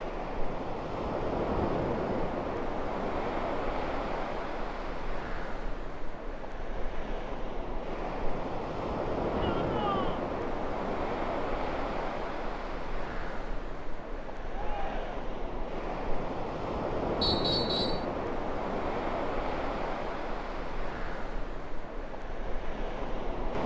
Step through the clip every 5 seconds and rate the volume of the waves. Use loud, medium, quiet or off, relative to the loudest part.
loud, loud, loud, loud, medium.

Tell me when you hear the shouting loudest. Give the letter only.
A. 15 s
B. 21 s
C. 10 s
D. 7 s
C.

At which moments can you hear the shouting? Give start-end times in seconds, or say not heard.
9.3-10.2, 14.5-15.2.